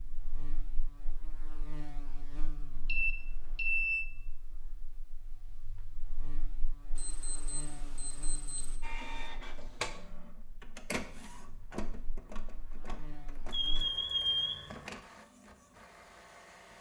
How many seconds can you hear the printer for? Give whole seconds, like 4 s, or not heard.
8 s.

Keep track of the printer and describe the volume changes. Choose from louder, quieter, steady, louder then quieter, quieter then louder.
quieter.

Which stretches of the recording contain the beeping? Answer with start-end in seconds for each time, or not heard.
2.9-4.0, 7.0-8.8, 13.5-14.8.